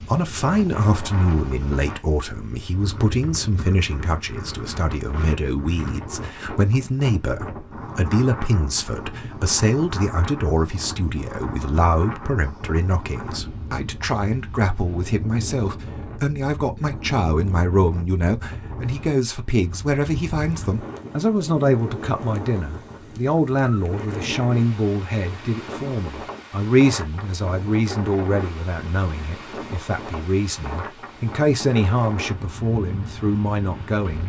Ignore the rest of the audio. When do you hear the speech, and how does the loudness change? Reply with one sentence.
The speech can be heard from 0.0 to 34.2 s, at a steady volume.